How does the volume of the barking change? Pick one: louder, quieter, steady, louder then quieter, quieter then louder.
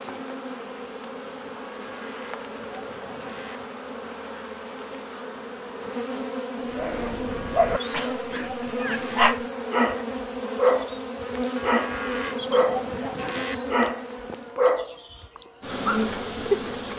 quieter then louder.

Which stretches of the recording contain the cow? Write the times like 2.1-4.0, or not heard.
1.8-3.6, 7.3-9.3, 11.6-13.6.